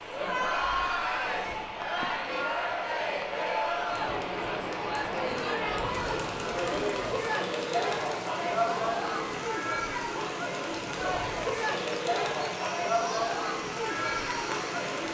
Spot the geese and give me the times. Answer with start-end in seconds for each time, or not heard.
not heard.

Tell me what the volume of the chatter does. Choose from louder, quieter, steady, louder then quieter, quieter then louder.
steady.